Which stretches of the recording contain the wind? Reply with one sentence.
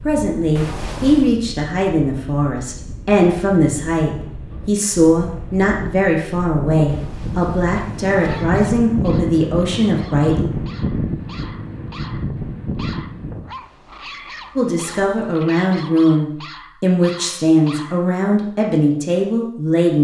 The wind can be heard from 0.0 to 13.5 s.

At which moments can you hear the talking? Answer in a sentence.
You can hear the talking from 0.0 to 10.5 s and from 14.6 to 19.9 s.